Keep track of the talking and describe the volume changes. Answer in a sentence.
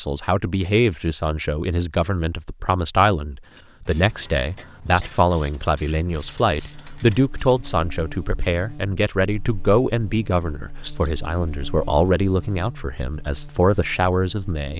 The volume of the talking stays about the same.